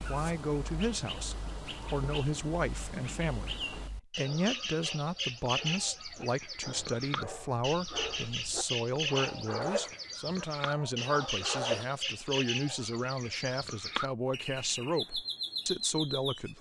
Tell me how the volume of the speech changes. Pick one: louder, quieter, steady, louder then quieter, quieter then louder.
steady.